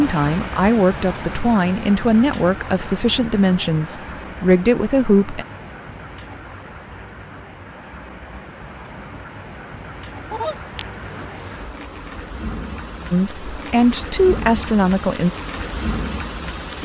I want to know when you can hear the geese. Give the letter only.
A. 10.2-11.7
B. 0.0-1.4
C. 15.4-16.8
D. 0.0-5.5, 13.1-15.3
A.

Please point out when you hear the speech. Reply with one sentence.
The speech can be heard from 0.0 to 5.5 s and from 13.1 to 15.3 s.